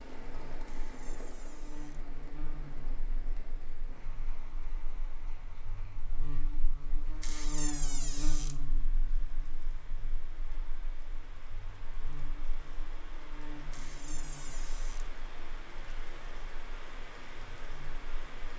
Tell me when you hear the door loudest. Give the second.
8 s.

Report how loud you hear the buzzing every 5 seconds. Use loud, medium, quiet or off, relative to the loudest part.
medium, loud, medium, quiet.